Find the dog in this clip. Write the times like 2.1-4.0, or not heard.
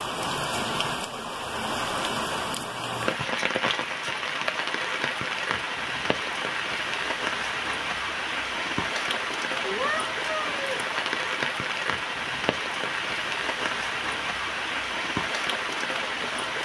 not heard.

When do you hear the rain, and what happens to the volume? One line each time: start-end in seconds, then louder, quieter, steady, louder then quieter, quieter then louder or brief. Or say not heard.
0.0-16.6 steady.